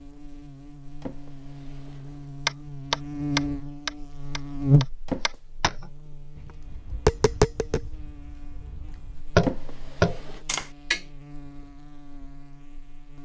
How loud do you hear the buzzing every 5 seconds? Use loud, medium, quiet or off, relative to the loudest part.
loud, quiet, quiet.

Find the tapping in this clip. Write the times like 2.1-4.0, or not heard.
2.5-11.0.